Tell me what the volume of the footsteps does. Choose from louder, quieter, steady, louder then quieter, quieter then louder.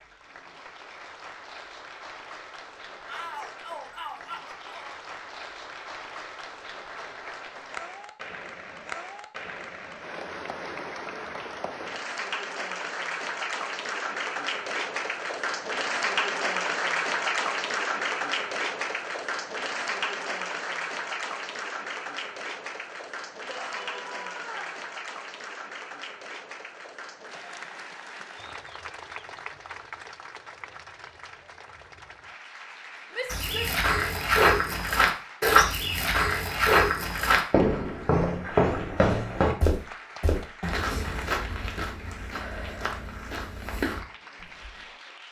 quieter.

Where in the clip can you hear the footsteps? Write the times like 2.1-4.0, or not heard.
33.2-44.9.